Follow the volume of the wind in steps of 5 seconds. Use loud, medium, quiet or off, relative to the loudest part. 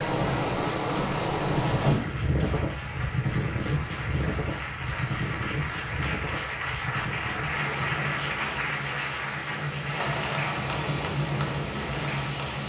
loud, medium, loud.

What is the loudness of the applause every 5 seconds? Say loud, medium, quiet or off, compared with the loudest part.
medium, loud, loud.